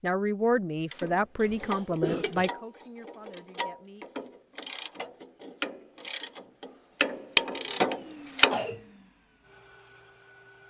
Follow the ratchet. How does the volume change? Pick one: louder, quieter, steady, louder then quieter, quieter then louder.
louder.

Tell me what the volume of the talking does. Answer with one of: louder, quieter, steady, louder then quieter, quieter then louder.
quieter.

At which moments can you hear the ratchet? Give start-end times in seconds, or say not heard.
0.9-8.6.